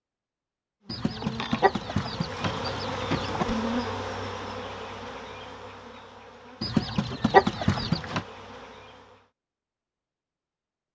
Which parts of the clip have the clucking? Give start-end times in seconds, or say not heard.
0.8-3.5, 6.6-8.2.